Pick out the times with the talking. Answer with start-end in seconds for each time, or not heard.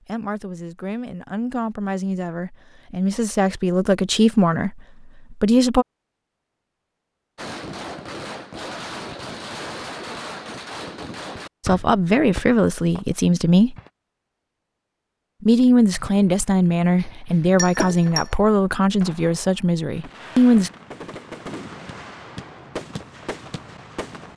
0.1-5.8, 11.7-13.8, 15.4-20.7.